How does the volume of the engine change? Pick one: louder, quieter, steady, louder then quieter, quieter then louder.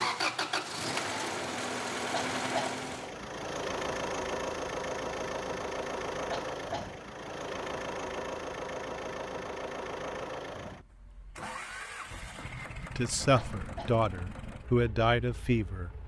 quieter.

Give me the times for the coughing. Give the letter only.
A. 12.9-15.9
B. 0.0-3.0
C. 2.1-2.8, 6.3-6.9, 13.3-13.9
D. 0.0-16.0
C.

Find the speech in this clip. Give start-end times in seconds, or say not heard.
12.9-15.9.